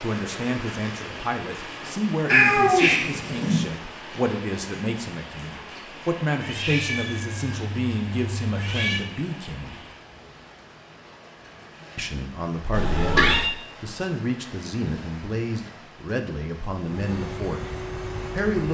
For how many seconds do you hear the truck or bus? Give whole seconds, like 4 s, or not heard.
2 s.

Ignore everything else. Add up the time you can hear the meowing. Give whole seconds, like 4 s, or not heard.
5 s.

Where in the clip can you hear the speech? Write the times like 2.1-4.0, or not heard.
0.0-9.8, 11.9-18.7.